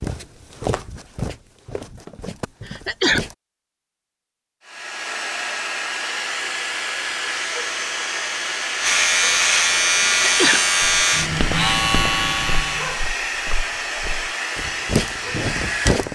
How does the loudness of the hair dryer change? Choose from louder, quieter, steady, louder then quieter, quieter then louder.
steady.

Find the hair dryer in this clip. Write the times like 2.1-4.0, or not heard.
4.7-16.1.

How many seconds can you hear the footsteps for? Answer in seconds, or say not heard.
9 s.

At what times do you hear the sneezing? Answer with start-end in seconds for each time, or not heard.
2.6-3.2, 10.2-10.6.